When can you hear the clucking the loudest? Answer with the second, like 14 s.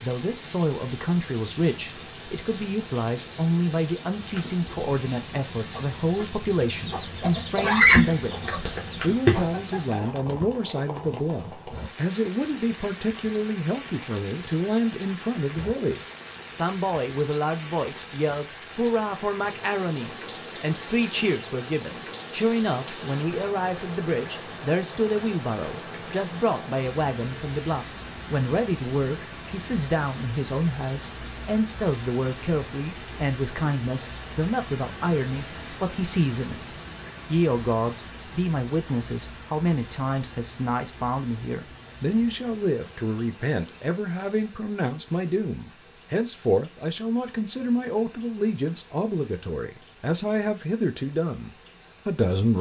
8 s.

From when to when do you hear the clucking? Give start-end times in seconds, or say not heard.
4.2-10.0.